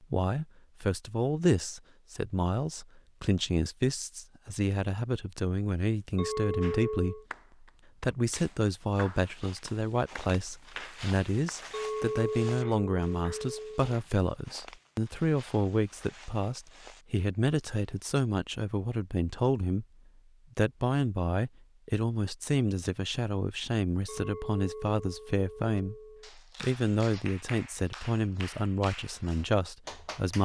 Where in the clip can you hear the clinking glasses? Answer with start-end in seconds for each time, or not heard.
6.2-7.2, 11.7-13.9, 24.1-26.3.